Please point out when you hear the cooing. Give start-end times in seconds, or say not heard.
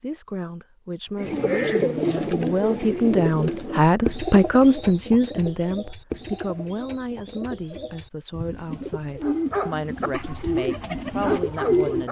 1.1-12.0.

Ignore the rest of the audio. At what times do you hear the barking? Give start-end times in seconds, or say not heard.
9.2-12.0.